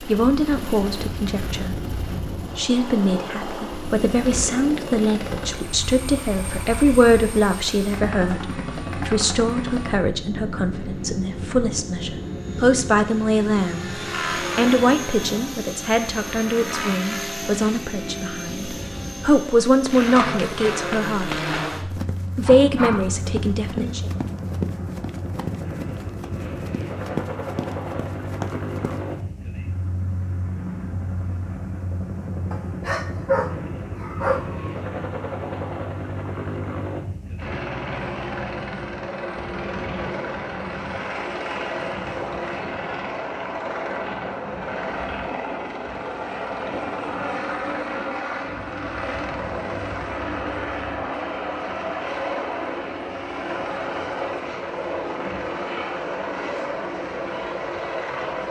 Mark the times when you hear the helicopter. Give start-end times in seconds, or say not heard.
0.0-58.4.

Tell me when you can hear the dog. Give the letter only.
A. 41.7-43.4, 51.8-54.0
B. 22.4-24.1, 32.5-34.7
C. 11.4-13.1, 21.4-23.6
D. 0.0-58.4
B.